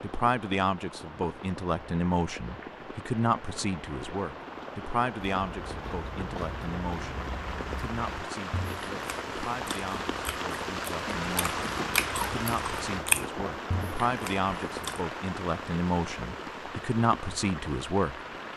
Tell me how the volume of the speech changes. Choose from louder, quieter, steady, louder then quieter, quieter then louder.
quieter then louder.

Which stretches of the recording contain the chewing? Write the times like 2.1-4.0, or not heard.
5.3-15.1.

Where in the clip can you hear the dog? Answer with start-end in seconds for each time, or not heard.
not heard.